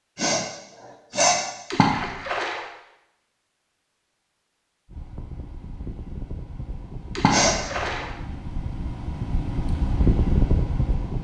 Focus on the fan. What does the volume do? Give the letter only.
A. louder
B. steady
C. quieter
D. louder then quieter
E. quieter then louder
A.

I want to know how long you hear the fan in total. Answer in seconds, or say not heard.
6 s.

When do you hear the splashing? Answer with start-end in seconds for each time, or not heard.
1.7-2.6, 7.2-8.1.